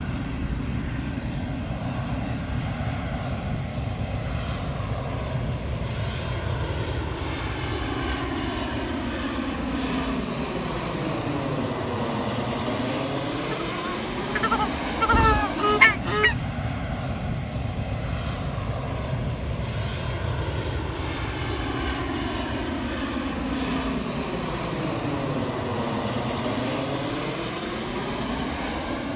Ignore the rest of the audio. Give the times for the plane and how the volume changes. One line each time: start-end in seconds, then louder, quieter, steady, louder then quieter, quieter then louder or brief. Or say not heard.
0.0-29.1 steady.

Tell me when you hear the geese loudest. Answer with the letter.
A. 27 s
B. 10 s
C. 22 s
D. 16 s
D.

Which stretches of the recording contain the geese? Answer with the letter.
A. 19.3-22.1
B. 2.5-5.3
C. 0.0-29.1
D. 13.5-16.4
D.